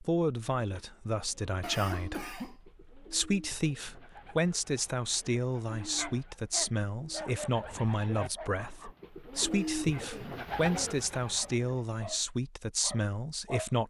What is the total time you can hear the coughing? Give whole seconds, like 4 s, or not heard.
2 s.